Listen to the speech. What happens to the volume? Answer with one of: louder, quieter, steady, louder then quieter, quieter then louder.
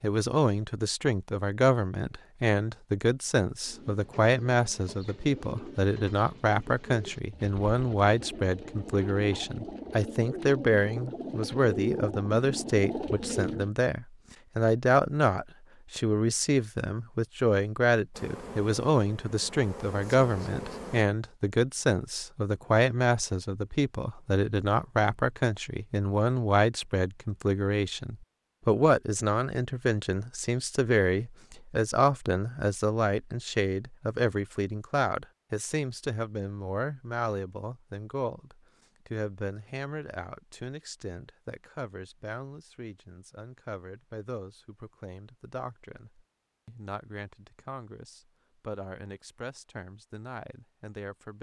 quieter.